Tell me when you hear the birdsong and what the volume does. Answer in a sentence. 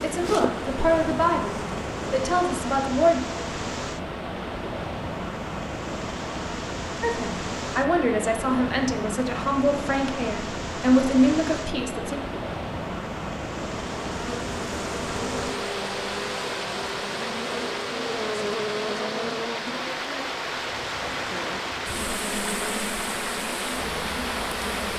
The birdsong can't be heard in this clip.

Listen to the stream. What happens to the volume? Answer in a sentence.
The volume of the stream stays about the same.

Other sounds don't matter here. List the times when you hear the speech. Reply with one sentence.
You can hear the speech from 0.0 to 3.2 s and from 7.0 to 12.2 s.